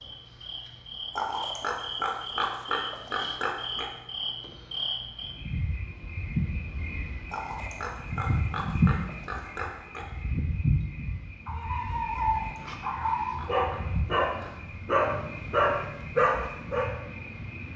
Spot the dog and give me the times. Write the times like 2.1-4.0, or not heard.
11.4-16.9.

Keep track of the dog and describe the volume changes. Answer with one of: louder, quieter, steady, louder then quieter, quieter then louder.
louder.